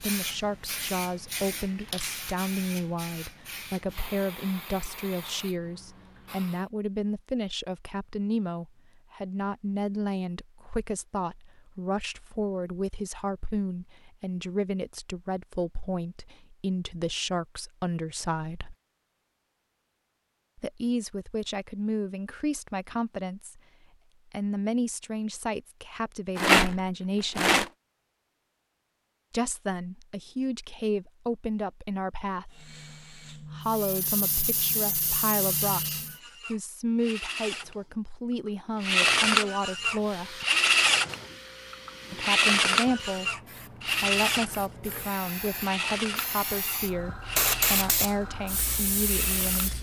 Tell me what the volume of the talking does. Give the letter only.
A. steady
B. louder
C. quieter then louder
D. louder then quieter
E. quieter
A.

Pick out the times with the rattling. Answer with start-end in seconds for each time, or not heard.
26.4-27.7.